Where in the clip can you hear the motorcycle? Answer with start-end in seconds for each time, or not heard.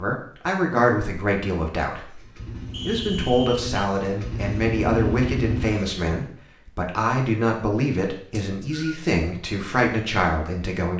1.9-6.2.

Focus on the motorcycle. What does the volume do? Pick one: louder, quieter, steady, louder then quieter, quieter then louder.
louder.